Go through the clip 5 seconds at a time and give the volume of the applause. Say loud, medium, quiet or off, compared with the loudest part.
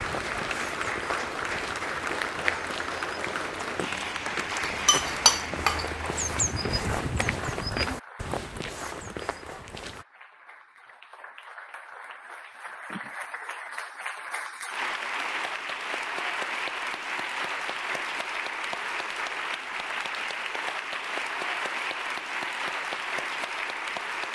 loud, medium, medium, loud, loud.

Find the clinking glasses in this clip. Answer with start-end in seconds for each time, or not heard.
4.6-5.8.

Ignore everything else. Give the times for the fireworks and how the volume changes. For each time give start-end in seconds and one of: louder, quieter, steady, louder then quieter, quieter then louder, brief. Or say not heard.
not heard.